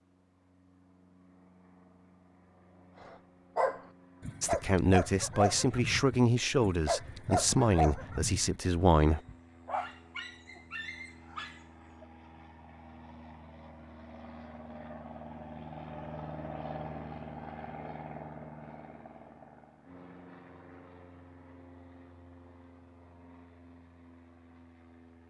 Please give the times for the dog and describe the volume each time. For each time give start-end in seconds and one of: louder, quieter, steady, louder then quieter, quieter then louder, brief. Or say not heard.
3.0-12.1 quieter.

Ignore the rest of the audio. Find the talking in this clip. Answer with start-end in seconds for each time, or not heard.
4.4-9.2.